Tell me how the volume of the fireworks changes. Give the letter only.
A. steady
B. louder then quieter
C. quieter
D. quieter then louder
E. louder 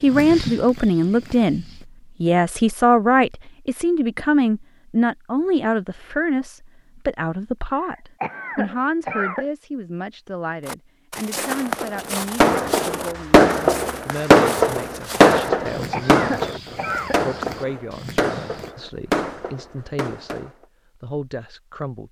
C.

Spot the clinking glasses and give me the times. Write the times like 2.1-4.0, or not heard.
not heard.